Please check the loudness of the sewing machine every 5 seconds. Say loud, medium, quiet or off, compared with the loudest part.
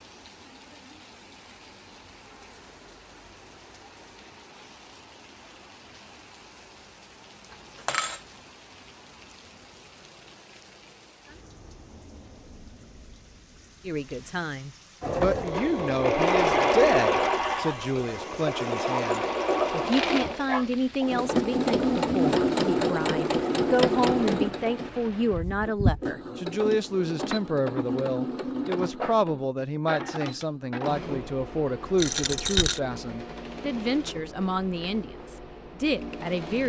off, off, off, loud, loud, medium, quiet, quiet.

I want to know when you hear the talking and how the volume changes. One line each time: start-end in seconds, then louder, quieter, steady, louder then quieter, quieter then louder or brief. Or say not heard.
13.8-36.6 steady.